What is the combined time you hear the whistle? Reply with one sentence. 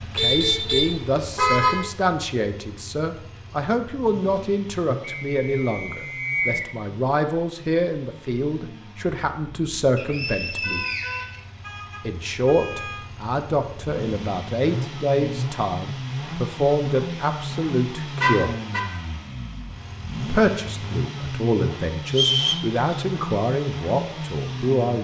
The whistle can be heard for 4 seconds in total.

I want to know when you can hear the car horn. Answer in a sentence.
You can hear the car horn from 0.1 to 1.8 s, from 10.6 to 13.1 s and from 18.2 to 18.9 s.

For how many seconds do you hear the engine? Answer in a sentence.
You can hear the engine for 25 seconds altogether.